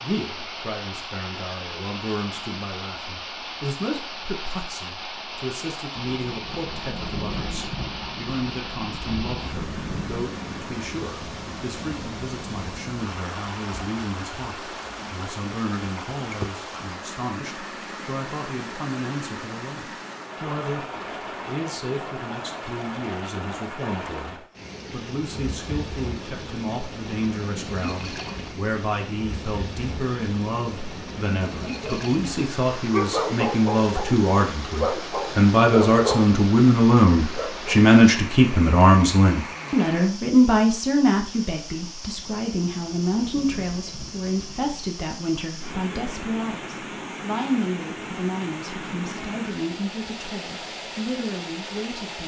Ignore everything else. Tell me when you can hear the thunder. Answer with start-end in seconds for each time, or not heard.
6.1-10.2, 42.1-44.9.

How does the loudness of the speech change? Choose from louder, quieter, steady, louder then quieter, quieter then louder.
louder then quieter.